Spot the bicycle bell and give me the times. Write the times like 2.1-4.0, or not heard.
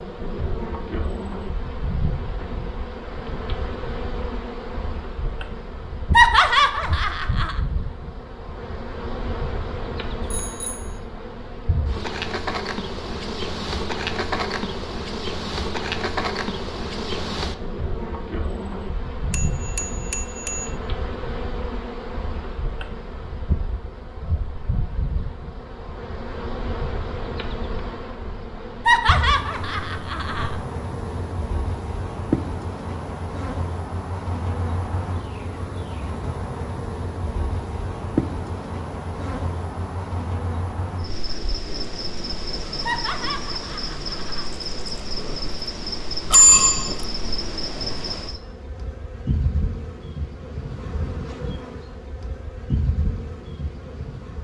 10.2-10.9, 19.3-20.7, 46.3-47.0.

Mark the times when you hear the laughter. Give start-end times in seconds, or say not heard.
6.1-7.5, 28.9-30.6, 42.9-44.5.